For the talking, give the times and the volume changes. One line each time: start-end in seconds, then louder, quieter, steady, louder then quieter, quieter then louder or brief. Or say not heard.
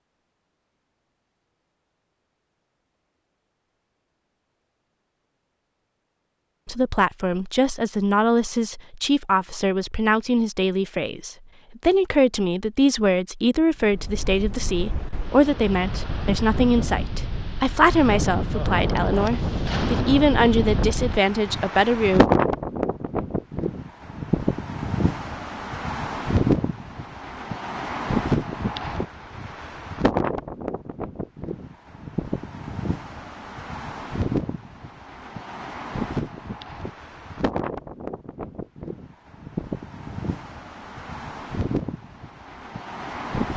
6.7-22.2 steady.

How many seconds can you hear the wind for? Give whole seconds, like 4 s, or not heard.
30 s.